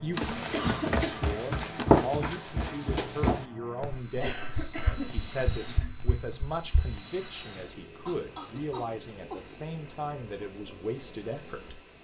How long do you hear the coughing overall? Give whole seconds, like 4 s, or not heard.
4 s.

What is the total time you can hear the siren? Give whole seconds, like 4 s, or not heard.
not heard.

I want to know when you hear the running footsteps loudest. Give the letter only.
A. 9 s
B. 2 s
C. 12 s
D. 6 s
B.